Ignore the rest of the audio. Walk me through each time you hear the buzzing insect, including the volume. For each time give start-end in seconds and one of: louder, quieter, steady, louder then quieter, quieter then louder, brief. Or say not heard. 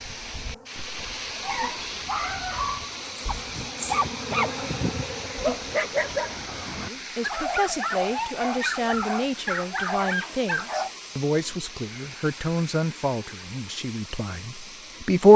0.0-5.8 louder.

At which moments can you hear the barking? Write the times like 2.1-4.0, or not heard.
1.4-10.9.